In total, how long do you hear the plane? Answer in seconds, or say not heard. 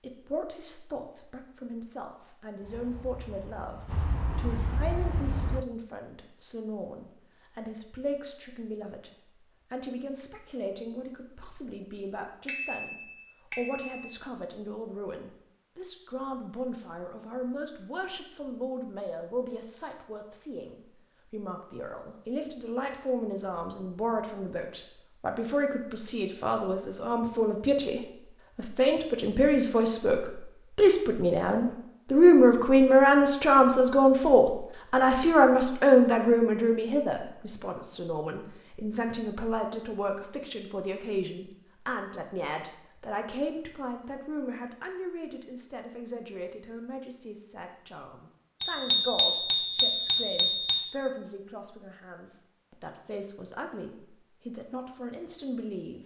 3 s.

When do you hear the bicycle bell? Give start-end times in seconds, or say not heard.
12.4-14.2, 48.6-50.9.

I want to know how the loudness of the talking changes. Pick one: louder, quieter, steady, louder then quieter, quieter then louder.
louder then quieter.